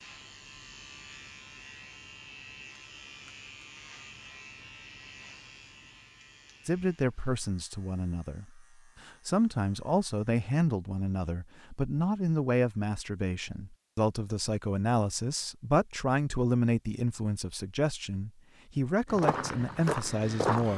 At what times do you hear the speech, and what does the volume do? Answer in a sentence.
The speech can be heard from 6.7 to 20.7 s, at a steady volume.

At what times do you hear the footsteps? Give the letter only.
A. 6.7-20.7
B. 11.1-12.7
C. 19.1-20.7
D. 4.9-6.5
C.